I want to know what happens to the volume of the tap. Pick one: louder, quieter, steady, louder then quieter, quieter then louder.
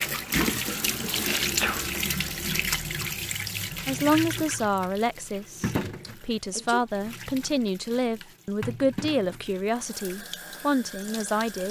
quieter.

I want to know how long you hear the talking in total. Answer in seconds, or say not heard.
8 s.